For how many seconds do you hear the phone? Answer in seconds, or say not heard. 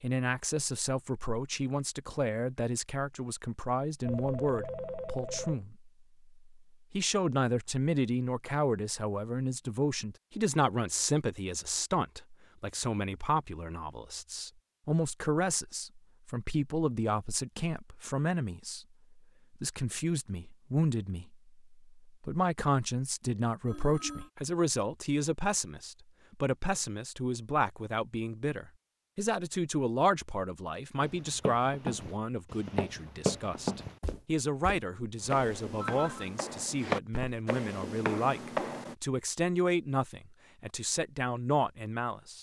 3 s.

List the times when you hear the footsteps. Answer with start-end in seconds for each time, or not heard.
31.0-39.0.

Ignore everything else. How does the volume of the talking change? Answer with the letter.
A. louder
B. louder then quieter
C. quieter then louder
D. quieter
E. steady
E.